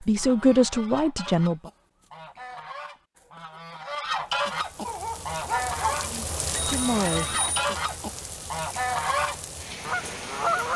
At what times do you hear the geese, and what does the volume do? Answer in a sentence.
You can hear the geese from 0.0 to 10.7 s, getting louder.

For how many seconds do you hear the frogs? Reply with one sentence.
You can't hear the frogs here.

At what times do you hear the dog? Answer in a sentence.
You can hear the dog from 4.8 to 6.0 s.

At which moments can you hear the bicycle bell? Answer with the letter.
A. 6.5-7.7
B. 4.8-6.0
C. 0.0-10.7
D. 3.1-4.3
A.